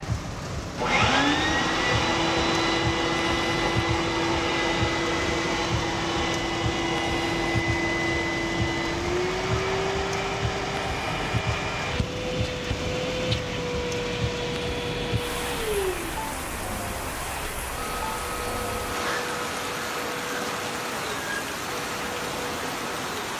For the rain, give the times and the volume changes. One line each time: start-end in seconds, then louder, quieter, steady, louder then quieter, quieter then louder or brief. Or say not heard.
0.0-23.3 steady.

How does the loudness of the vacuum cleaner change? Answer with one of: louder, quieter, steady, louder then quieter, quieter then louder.
quieter.